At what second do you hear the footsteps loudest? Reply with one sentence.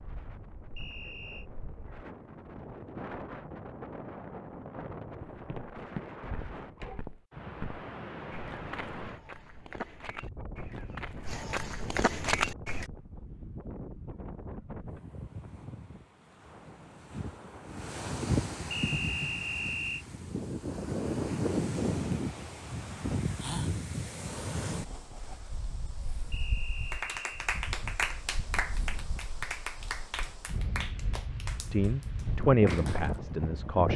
The loudest moment of the footsteps is at 12 seconds.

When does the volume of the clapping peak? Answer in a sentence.
The loudest moment of the clapping is at 28 seconds.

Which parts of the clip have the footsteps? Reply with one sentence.
The footsteps can be heard from 5.3 to 12.9 s.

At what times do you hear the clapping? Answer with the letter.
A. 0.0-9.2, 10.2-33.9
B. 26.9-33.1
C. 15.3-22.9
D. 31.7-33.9
B.